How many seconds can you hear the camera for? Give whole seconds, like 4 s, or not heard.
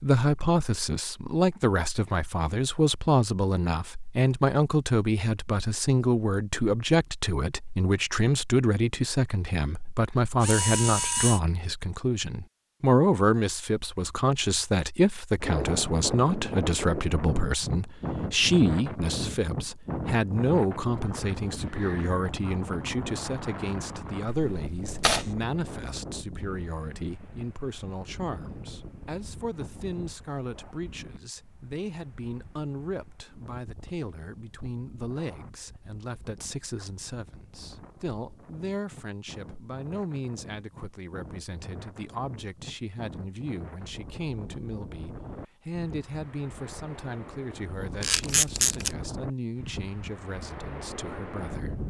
3 s.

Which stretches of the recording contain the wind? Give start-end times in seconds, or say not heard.
15.4-51.8.